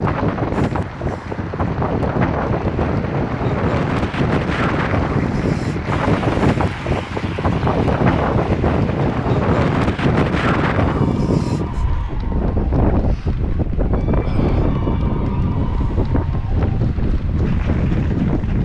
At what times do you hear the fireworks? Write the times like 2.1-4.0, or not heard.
not heard.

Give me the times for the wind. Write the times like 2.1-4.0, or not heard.
0.0-18.6.